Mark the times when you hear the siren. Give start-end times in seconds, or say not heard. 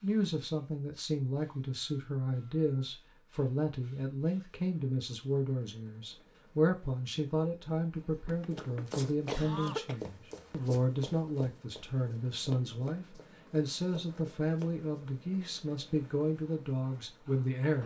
not heard.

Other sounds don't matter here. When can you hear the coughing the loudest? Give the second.
10 s.